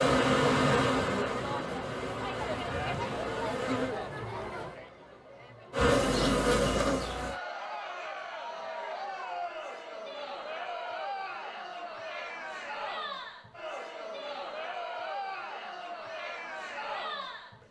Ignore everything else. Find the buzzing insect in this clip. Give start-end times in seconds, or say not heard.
0.0-4.0, 5.7-7.3.